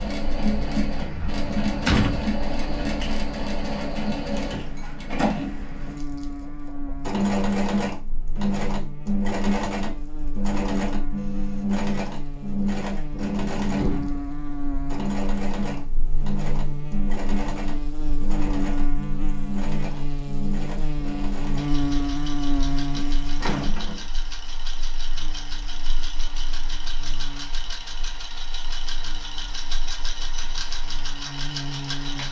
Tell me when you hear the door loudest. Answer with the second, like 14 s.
2 s.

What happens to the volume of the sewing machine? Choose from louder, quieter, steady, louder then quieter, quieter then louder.
quieter.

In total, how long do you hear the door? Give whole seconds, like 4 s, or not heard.
3 s.